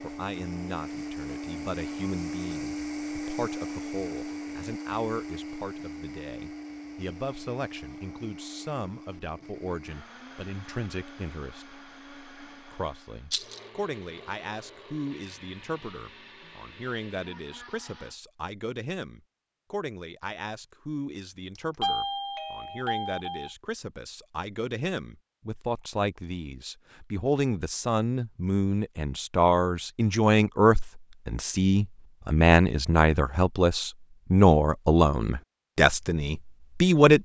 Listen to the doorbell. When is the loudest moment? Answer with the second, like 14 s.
22 s.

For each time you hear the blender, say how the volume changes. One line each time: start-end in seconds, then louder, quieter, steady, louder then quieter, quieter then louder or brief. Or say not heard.
0.0-18.1 quieter.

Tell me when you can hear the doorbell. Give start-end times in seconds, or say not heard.
21.6-23.5.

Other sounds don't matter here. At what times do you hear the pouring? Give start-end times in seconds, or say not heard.
not heard.